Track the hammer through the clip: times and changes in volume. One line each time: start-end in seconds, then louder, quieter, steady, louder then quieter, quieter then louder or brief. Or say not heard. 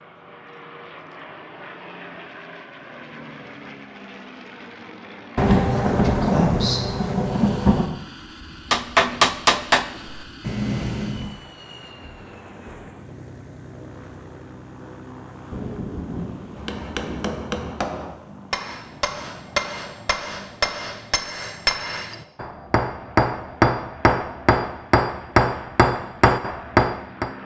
8.7-11.3 brief
16.6-27.3 louder.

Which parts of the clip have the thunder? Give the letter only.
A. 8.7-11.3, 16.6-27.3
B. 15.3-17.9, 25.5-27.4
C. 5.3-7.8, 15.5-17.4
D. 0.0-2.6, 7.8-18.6
C.